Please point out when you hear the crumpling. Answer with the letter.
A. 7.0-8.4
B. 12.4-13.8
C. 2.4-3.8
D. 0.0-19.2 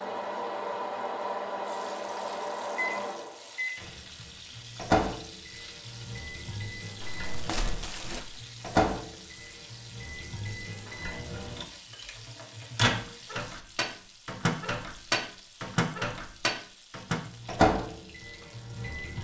A.